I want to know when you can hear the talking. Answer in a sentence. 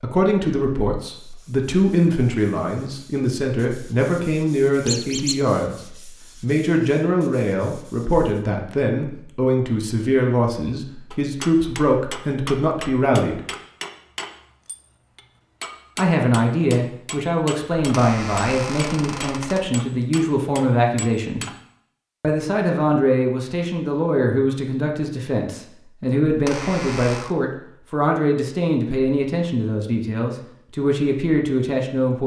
You can hear the talking from 0.0 to 13.4 s, from 15.9 to 21.4 s and from 22.2 to 32.2 s.